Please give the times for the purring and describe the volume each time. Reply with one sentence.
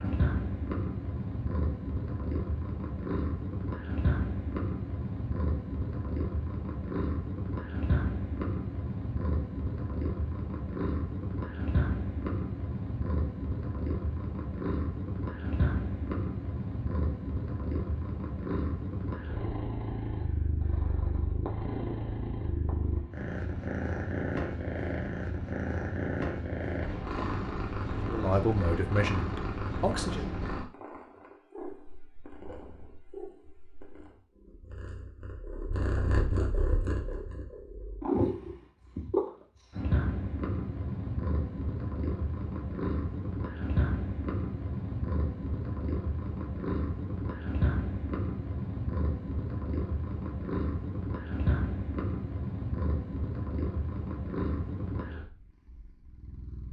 The purring can be heard from 0.0 to 56.6 s, at a steady volume.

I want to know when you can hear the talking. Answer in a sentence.
The talking can be heard from 28.1 to 30.2 s.